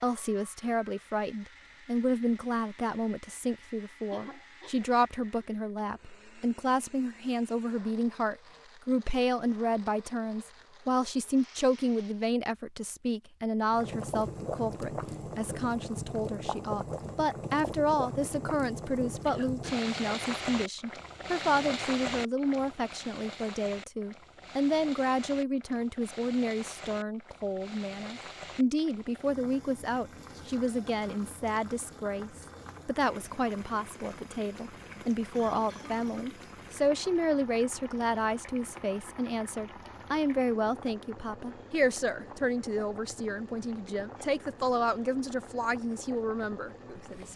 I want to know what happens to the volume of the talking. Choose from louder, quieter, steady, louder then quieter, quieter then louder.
steady.